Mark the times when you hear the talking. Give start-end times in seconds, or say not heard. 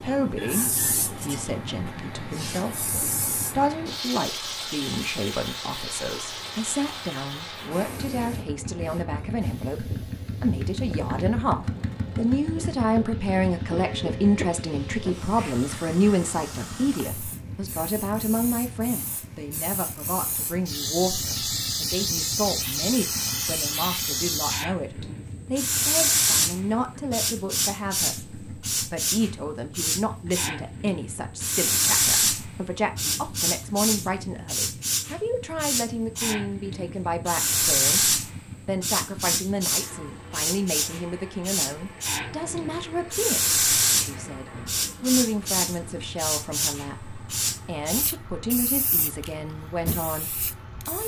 0.0-51.0.